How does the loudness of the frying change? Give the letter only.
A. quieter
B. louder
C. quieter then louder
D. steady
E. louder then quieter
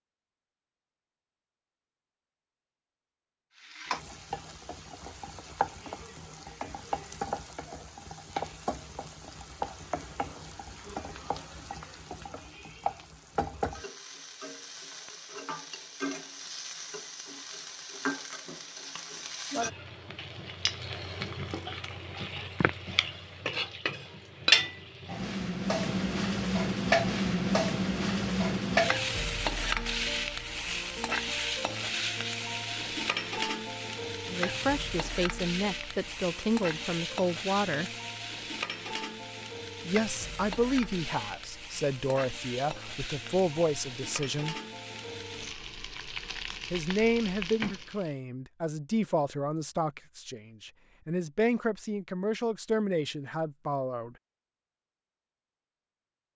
E.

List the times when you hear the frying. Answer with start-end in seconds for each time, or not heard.
3.5-48.1.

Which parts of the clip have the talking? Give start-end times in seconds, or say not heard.
34.2-37.9, 39.9-44.5, 46.7-54.1.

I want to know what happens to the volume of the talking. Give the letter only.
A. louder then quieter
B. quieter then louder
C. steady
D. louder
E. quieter
C.